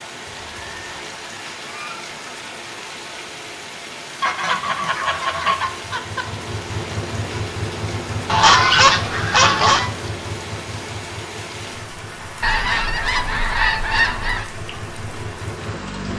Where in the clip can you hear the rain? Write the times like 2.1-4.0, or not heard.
0.0-16.1.